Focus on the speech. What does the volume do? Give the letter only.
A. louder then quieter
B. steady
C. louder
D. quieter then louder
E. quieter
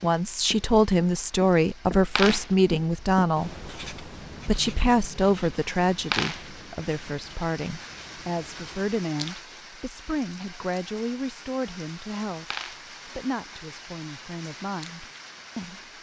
E.